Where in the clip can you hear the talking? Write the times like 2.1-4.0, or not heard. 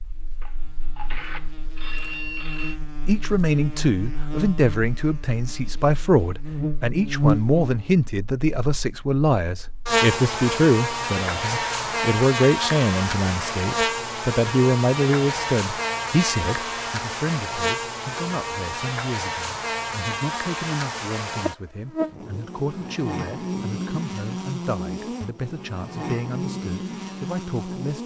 3.0-28.0.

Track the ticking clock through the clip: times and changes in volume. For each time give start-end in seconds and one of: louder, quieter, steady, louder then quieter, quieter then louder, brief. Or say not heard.
not heard.